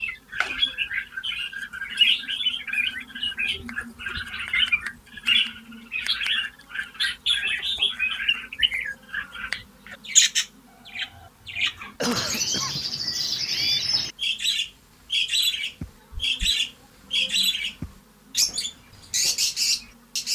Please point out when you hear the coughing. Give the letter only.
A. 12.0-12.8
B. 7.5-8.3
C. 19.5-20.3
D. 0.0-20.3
A.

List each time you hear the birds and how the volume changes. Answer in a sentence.
You can hear the birds from 0.0 to 20.3 s, at a steady volume.